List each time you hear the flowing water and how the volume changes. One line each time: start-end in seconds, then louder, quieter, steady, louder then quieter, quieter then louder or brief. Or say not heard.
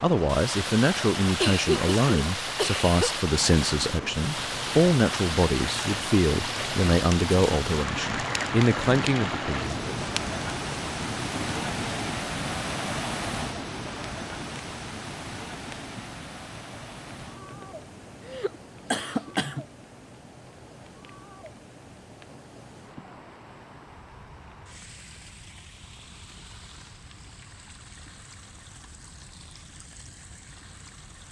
0.0-31.2 quieter.